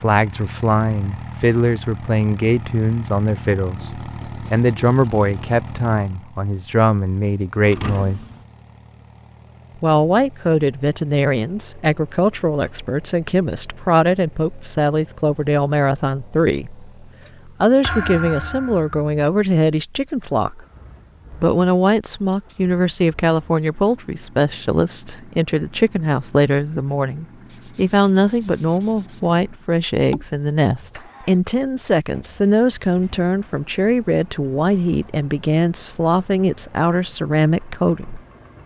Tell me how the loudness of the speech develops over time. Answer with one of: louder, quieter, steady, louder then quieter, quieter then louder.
steady.